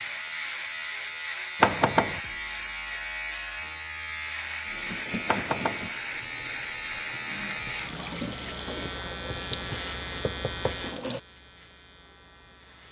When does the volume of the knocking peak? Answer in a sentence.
The loudest moment of the knocking is at 2 seconds.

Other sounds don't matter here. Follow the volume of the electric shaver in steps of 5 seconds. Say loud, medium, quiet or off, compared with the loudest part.
loud, loud, medium.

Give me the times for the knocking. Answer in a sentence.
You can hear the knocking from 1.6 to 2.2 s, from 5.2 to 5.9 s and from 9.3 to 10.8 s.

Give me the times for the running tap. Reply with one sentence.
You can hear the running tap from 4.7 to 11.2 s.